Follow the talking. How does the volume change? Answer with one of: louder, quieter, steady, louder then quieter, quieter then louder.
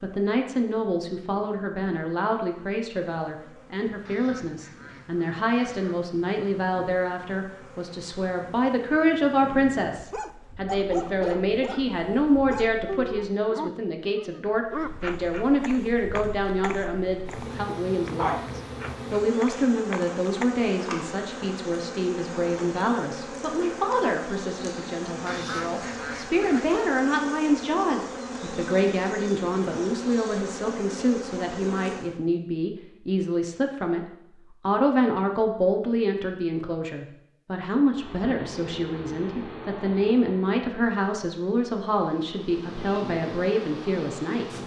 steady.